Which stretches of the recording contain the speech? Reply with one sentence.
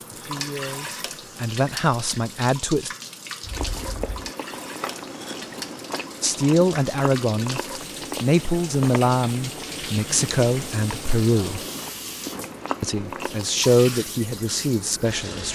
The speech can be heard from 0.1 to 2.9 s, from 6.2 to 7.6 s, from 8.2 to 11.6 s and from 12.8 to 15.5 s.